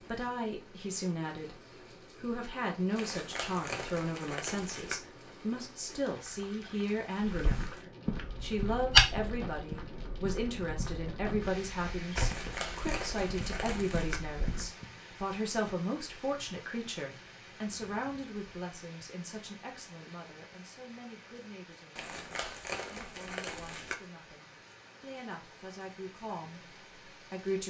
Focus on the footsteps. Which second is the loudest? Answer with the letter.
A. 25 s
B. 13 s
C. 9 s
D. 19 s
C.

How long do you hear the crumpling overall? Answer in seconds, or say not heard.
6 s.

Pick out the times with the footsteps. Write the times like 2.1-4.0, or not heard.
7.2-14.7.